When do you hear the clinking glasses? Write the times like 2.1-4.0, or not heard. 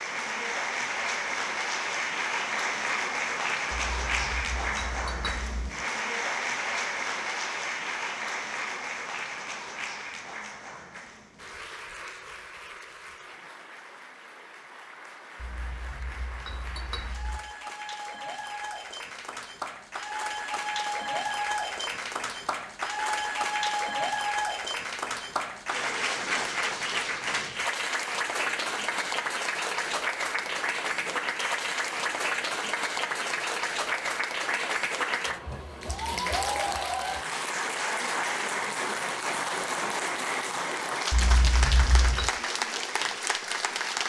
3.7-5.7, 15.3-17.4, 41.1-42.3.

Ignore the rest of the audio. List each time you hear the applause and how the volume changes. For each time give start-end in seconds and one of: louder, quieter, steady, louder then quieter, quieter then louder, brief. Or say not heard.
0.0-44.0 quieter then louder.